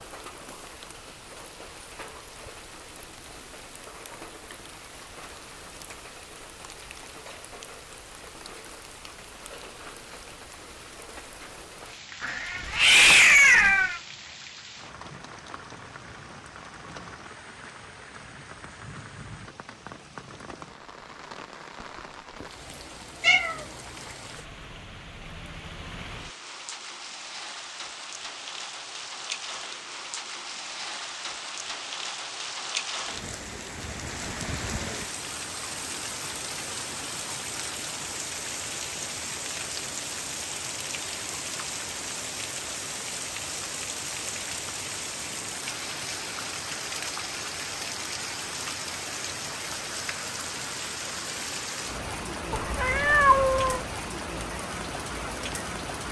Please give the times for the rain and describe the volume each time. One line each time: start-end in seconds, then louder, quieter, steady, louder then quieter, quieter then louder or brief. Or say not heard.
0.0-56.0 louder.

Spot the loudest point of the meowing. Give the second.
13 s.